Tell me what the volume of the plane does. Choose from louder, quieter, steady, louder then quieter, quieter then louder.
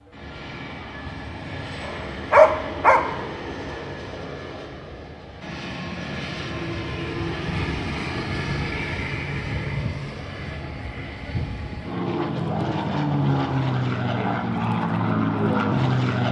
louder.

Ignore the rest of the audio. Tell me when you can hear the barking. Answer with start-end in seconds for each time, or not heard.
1.9-3.2.